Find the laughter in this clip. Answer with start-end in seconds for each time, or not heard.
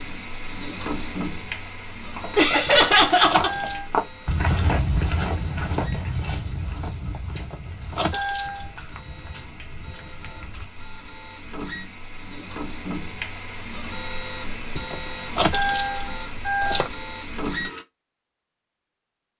2.4-3.5.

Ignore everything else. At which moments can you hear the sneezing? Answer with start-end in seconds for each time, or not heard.
not heard.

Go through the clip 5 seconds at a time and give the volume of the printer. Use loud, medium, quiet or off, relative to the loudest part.
loud, quiet, loud, loud.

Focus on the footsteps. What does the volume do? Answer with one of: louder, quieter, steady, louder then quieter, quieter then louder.
quieter.